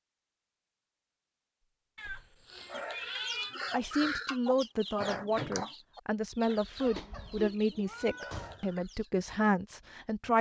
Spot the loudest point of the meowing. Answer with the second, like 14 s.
3 s.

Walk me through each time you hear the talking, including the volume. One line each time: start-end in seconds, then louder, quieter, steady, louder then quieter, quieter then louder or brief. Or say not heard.
3.7-10.3 steady.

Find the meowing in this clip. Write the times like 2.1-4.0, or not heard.
1.9-3.5, 6.8-8.6.